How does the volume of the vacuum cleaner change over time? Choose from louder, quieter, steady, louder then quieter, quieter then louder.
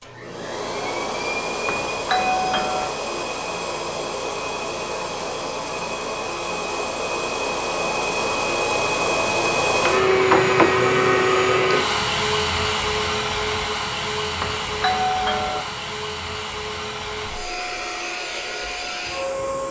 louder then quieter.